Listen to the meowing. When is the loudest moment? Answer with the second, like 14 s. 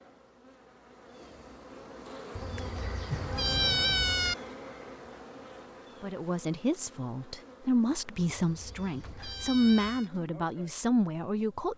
4 s.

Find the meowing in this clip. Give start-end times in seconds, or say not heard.
2.4-4.3, 8.2-10.1.